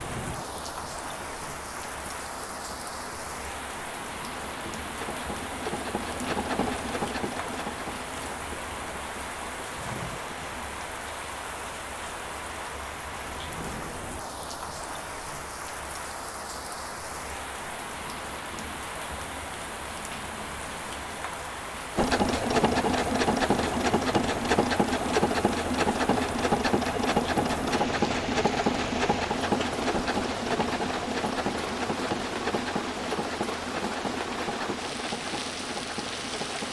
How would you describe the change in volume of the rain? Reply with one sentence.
The volume of the rain stays about the same.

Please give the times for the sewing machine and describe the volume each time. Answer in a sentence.
You can hear the sewing machine from 0.0 to 10.4 s, getting louder then quieter; and from 21.9 to 36.6 s, getting quieter.